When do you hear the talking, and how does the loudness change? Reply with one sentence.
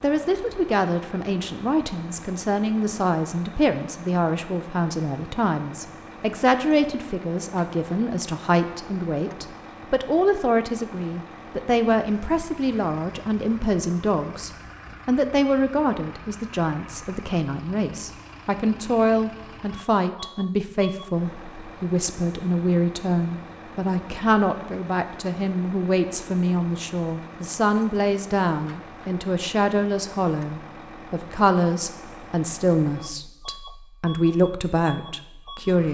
The talking can be heard from 0.0 to 35.9 s, at a steady volume.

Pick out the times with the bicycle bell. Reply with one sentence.
The bicycle bell can't be heard in this clip.